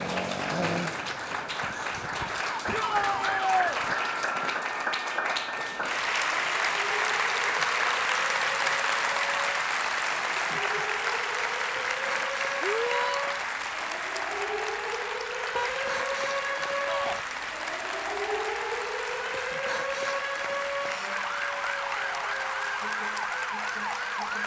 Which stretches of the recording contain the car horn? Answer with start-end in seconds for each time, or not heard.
15.6-16.2.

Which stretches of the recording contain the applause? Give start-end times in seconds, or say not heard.
0.0-24.4.